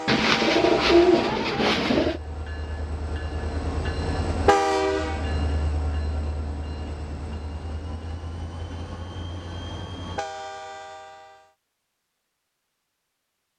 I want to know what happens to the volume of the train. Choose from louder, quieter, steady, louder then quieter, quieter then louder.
louder then quieter.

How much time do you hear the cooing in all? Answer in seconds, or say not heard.
2 s.